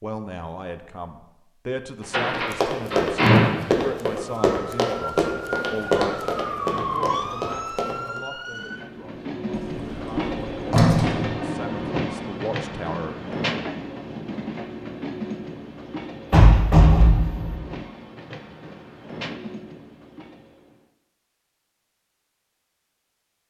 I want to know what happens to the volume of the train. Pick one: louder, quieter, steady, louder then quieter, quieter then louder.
quieter.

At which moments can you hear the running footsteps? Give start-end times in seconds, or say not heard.
2.3-8.2.